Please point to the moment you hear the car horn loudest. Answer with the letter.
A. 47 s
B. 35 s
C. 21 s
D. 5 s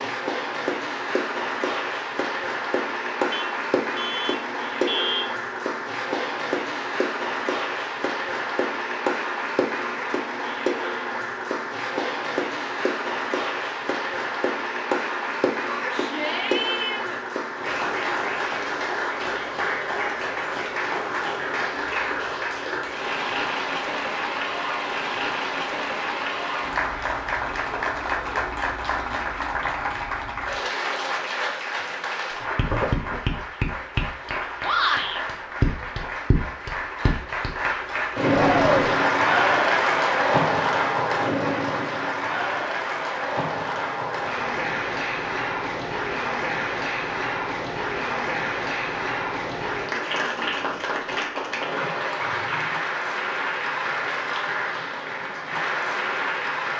D.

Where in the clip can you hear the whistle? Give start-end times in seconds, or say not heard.
not heard.